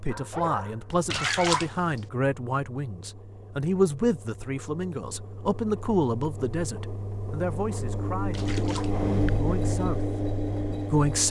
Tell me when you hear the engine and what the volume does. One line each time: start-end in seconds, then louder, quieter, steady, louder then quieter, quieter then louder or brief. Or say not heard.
0.1-11.2 louder.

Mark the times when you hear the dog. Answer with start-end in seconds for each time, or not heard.
0.1-1.6.